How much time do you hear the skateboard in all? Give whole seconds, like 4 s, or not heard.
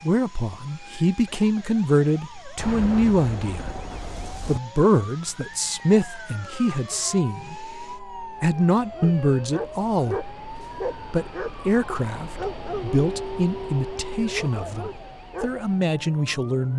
not heard.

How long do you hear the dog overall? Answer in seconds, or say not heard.
9 s.